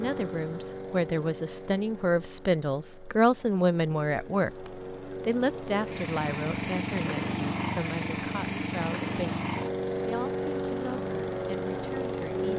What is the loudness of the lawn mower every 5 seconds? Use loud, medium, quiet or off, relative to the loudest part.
medium, loud, loud.